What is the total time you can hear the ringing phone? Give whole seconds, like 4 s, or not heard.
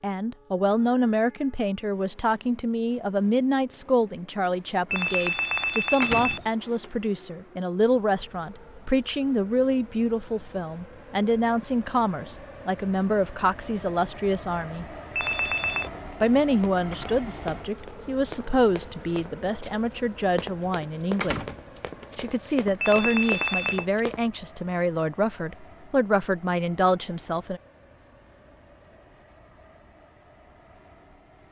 3 s.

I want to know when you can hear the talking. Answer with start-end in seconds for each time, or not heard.
0.0-14.8, 16.2-21.4, 22.1-27.6.